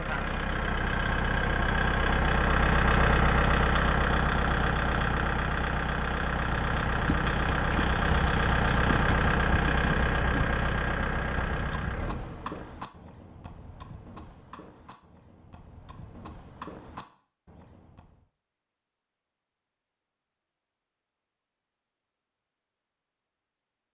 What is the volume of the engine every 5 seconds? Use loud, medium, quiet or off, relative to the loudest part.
loud, loud, medium, off, off.